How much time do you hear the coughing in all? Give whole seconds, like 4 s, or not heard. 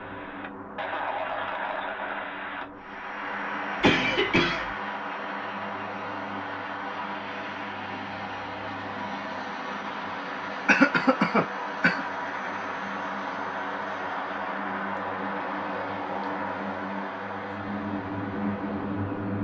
2 s.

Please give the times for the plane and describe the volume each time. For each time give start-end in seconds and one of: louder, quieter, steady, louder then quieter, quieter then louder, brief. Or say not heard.
0.0-19.3 steady.